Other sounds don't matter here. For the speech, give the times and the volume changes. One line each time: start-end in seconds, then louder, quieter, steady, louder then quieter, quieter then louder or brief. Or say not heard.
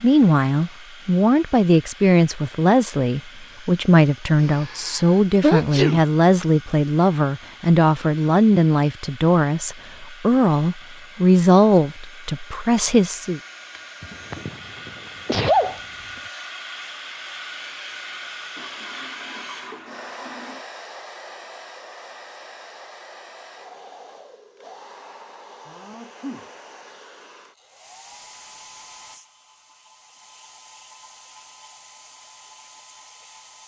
0.0-13.4 steady.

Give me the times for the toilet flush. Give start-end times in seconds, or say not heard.
18.6-20.6.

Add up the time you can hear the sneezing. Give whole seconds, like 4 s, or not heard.
4 s.